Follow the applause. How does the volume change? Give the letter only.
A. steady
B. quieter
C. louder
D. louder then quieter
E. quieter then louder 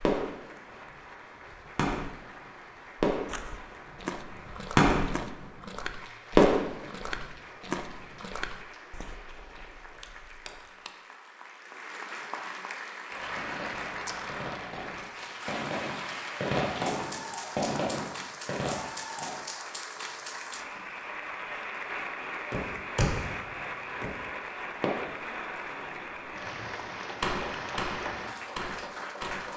C.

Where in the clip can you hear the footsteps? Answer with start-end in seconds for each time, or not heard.
3.2-10.7.